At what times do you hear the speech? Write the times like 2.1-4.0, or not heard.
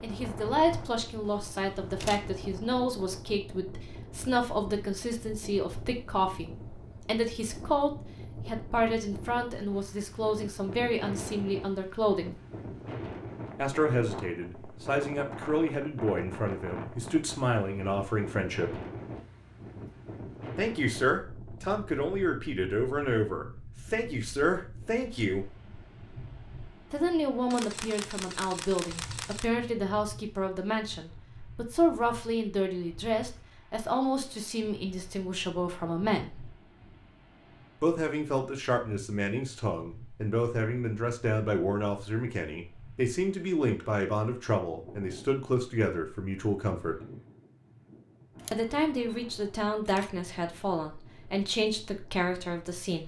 0.0-12.3, 13.6-18.8, 20.6-25.4, 26.9-36.5, 37.8-47.0, 48.5-53.0.